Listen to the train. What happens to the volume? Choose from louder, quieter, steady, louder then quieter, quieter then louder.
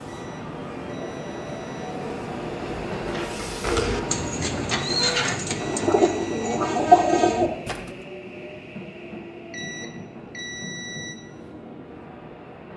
quieter.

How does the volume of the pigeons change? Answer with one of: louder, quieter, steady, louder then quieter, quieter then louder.
louder.